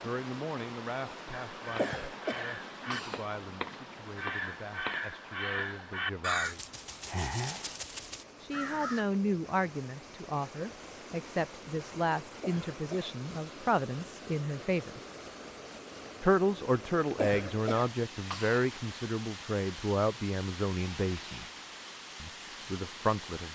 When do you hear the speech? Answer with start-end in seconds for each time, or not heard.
0.0-6.6, 8.4-15.0, 16.2-21.4, 22.2-23.5.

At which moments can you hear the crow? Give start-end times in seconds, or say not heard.
1.5-9.1.